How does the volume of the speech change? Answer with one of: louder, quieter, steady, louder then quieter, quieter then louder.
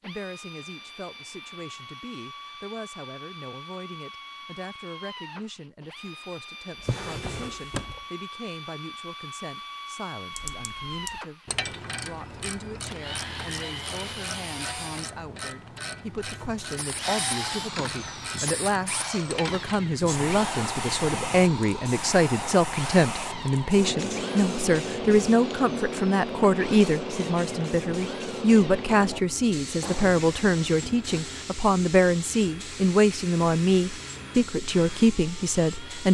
louder.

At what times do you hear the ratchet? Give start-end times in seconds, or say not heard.
10.3-19.8.